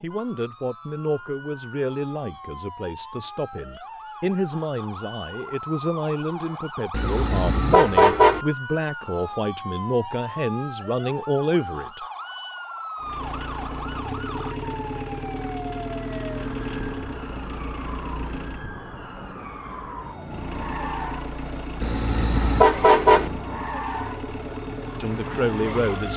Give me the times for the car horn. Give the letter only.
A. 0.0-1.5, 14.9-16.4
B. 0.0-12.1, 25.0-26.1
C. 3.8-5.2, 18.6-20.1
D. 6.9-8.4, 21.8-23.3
D.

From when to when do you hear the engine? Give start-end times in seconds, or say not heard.
13.0-18.7, 20.2-26.1.